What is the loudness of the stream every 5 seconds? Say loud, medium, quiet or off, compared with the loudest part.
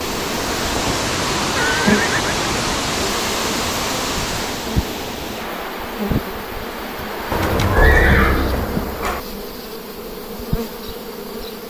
loud, medium, off.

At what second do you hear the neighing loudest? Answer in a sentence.
The volume of the neighing peaks at 8 seconds.